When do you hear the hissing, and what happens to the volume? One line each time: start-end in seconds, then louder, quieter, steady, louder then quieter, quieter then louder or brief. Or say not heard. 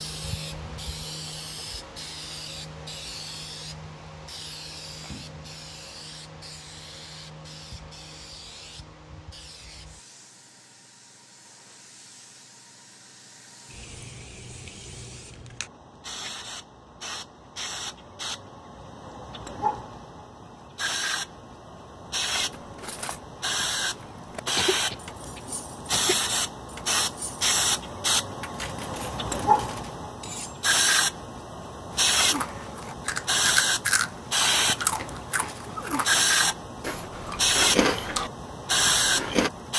0.0-39.7 quieter then louder.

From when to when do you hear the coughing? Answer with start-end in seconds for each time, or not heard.
24.6-26.1.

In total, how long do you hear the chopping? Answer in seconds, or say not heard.
not heard.